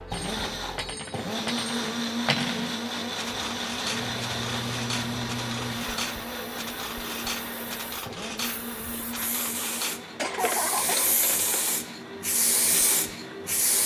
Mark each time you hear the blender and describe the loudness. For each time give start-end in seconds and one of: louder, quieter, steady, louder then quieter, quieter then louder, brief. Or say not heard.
0.0-13.8 quieter.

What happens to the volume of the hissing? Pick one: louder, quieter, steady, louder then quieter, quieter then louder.
quieter then louder.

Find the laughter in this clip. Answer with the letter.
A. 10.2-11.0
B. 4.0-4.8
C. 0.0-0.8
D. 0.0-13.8
A.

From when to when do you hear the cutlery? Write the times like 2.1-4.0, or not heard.
0.1-11.6.